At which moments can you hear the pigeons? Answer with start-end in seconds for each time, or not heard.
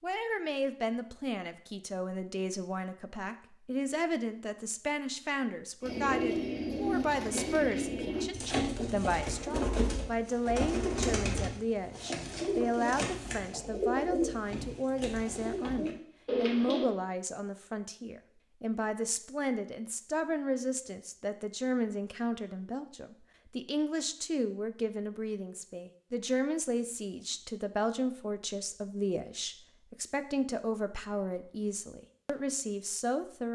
5.8-16.9.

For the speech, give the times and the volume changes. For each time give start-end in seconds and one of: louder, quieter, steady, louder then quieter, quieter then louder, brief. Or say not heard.
0.0-33.5 steady.